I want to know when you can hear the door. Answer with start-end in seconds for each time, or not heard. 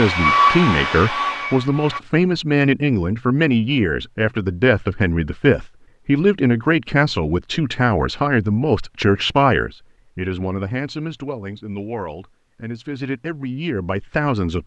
not heard.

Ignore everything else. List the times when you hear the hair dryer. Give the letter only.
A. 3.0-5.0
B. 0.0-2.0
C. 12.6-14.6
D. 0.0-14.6
B.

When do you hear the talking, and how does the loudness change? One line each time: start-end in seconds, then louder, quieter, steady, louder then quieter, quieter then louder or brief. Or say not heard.
0.0-14.6 quieter.